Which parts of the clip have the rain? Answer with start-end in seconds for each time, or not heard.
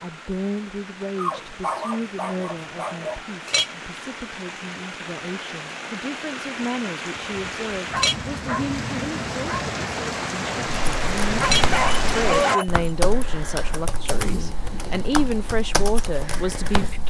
0.0-12.6.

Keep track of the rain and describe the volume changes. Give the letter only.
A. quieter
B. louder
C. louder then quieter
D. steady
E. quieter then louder
B.